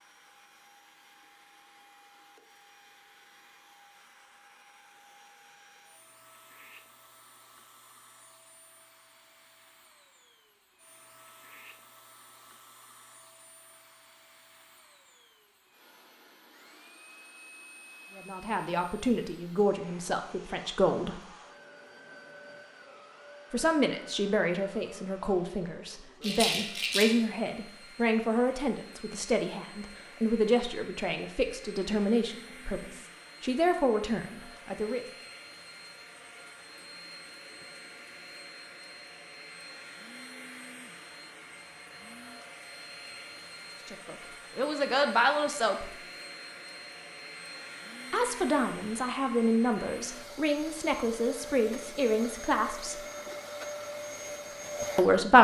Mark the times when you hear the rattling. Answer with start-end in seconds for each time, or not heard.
26.2-27.1.